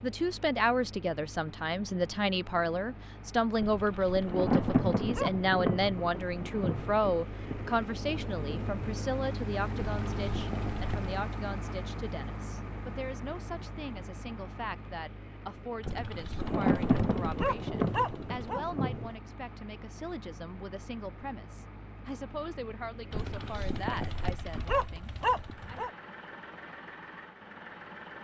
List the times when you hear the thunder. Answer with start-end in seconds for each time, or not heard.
4.2-8.9, 16.4-19.1.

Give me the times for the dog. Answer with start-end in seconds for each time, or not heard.
3.5-5.3, 9.8-11.2, 15.8-18.6, 23.1-25.9.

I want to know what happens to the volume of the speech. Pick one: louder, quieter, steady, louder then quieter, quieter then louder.
quieter.